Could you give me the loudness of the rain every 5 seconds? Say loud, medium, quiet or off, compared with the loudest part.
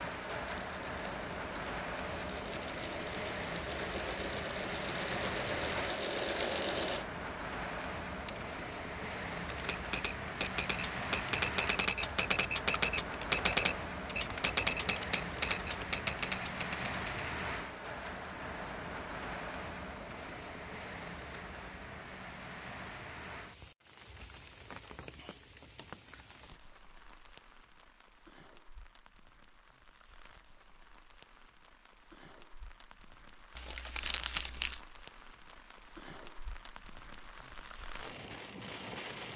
loud, loud, loud, loud, medium, quiet, quiet, medium.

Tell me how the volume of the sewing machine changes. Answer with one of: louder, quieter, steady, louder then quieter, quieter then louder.
louder.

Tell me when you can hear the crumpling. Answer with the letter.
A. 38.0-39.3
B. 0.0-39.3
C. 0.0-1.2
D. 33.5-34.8
D.